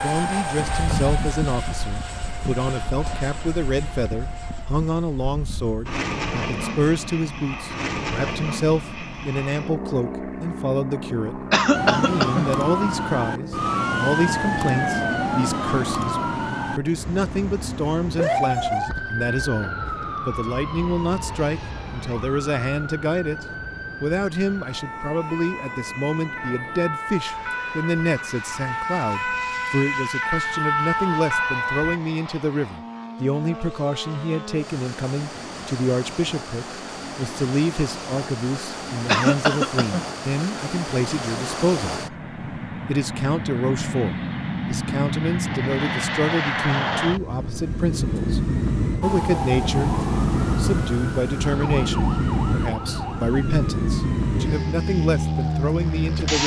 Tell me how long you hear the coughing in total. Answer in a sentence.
The coughing can be heard for 2 seconds in total.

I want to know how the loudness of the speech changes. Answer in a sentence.
The loudness of the speech stays about the same.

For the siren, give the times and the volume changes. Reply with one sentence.
You can hear the siren from 11.7 to 32.0 s, getting quieter then louder; and from 49.0 to 56.4 s, getting quieter.